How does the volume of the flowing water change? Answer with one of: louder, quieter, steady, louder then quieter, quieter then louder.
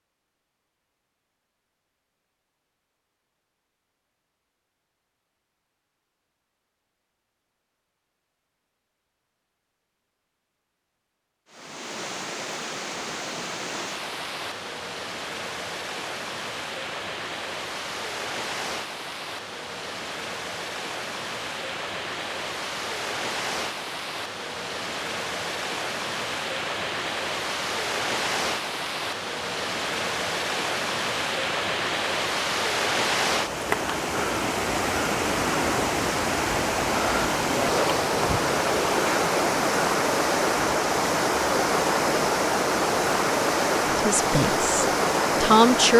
louder.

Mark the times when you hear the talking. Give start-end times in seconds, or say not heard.
44.0-45.9.